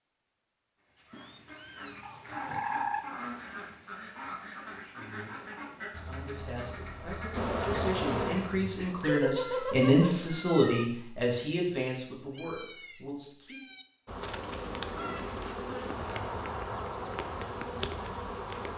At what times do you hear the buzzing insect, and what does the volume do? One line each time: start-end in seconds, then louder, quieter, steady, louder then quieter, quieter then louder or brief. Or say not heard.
7.3-9.1 brief
14.1-18.7 steady.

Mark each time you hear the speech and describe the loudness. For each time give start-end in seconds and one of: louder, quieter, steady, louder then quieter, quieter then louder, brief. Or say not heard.
5.8-13.6 louder then quieter.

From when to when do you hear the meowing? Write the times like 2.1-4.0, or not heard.
1.1-3.0, 9.0-10.8, 14.4-15.2.